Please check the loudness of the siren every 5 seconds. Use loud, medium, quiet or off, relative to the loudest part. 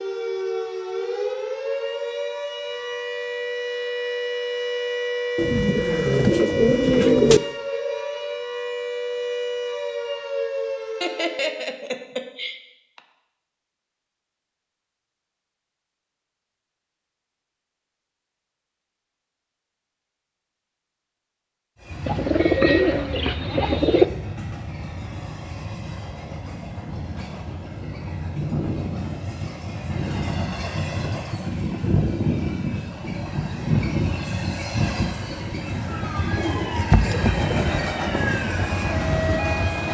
loud, loud, loud, off, off, off, off, loud.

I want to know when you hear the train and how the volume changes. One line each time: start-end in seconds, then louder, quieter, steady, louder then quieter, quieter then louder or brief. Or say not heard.
21.8-39.9 louder.